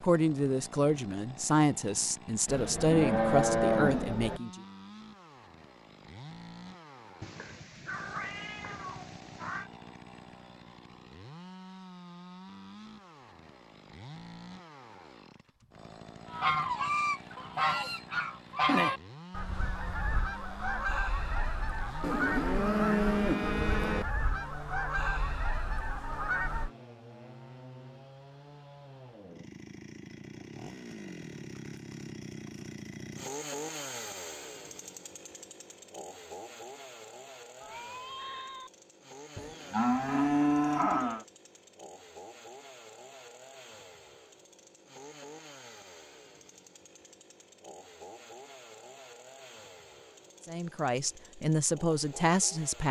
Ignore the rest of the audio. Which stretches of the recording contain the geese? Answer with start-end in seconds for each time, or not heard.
16.3-26.7.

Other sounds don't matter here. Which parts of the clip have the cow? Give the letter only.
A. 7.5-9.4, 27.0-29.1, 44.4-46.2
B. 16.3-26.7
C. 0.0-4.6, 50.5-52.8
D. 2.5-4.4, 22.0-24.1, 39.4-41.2
D.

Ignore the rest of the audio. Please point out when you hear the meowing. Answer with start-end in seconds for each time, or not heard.
7.2-9.7, 37.6-38.7.